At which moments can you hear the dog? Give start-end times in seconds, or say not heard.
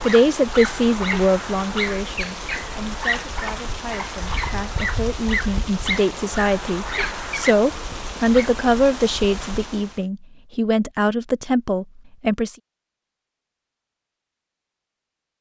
0.0-8.5.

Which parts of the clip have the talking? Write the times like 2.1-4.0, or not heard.
0.0-12.6.